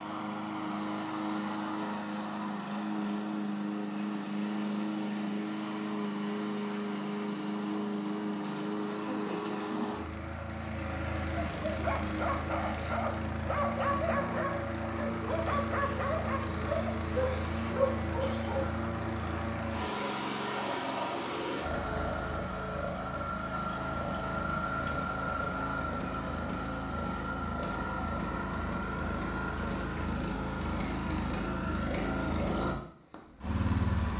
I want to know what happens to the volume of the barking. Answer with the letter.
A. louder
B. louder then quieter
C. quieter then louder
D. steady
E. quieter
D.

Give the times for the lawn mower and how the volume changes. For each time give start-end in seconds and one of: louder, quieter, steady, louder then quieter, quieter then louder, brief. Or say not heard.
0.0-34.1 steady.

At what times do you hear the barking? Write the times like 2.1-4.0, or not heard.
11.4-18.7.